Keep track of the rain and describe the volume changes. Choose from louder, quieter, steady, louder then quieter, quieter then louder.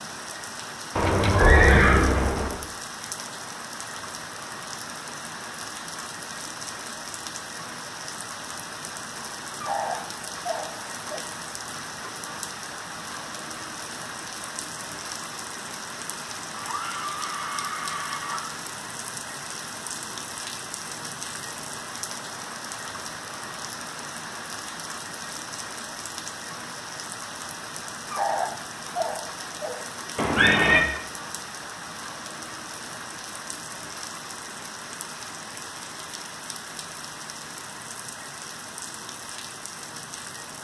steady.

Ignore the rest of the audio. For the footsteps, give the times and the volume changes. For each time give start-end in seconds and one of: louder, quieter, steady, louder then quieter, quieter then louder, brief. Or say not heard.
not heard.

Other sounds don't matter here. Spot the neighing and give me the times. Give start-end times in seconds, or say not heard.
0.9-2.6, 16.5-18.6, 30.1-30.9.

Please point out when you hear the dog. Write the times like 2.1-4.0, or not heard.
9.6-11.2, 28.1-29.9.